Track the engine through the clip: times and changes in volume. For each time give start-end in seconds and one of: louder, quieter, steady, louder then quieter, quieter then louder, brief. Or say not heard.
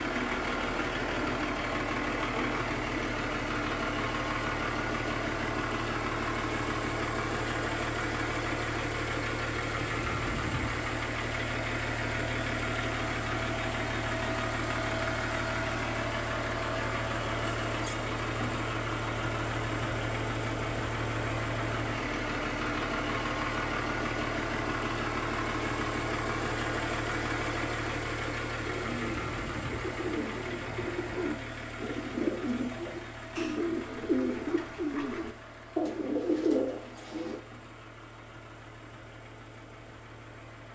0.0-40.7 quieter.